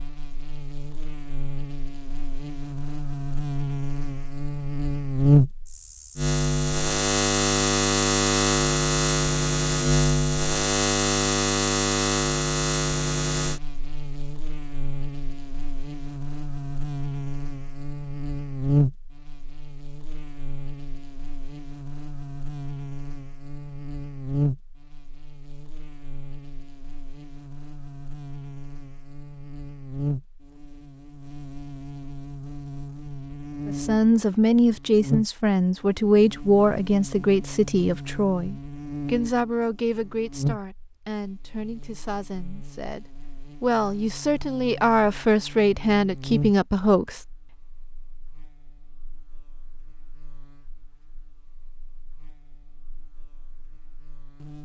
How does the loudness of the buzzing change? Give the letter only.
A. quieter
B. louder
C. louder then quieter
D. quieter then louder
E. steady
A.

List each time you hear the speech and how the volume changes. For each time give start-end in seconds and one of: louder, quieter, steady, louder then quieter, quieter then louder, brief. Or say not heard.
33.6-47.2 quieter then louder.